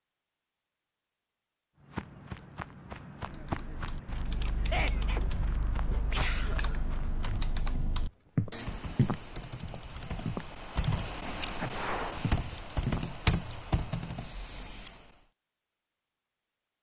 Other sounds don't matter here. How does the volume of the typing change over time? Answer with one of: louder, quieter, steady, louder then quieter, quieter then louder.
louder.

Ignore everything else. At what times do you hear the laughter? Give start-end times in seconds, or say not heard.
4.5-5.2.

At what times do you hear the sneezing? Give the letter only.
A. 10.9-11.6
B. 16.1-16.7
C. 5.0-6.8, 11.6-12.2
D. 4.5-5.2
C.